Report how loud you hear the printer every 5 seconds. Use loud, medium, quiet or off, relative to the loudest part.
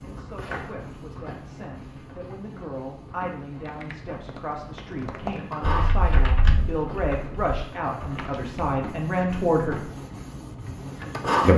quiet, medium, loud.